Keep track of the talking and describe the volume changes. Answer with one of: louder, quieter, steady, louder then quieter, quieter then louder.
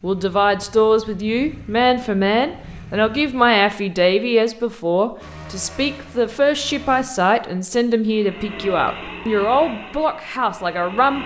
steady.